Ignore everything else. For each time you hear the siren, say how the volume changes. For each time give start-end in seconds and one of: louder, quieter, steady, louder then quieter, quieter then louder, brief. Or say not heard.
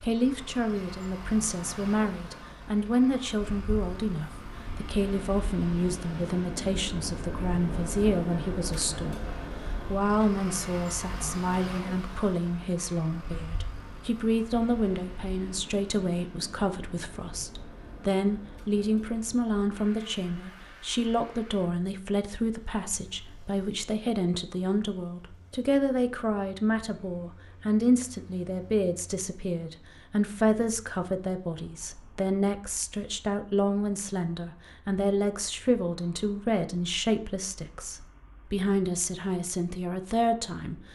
not heard.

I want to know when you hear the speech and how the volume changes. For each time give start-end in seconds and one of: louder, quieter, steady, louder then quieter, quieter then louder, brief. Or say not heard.
0.0-40.9 steady.